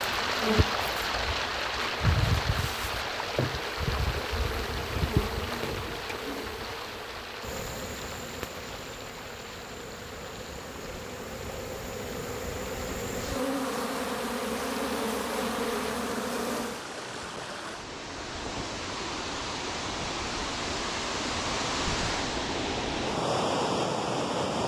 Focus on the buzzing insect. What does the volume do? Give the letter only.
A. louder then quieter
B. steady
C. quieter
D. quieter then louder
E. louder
D.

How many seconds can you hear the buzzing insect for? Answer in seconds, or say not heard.
17 s.